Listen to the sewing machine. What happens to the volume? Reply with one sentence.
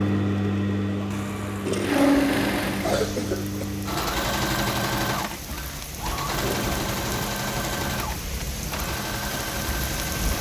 The loudness of the sewing machine goes down.